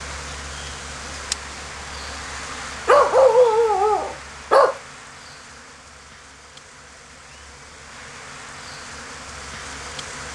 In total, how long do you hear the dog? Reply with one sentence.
You can hear the dog for 2 seconds altogether.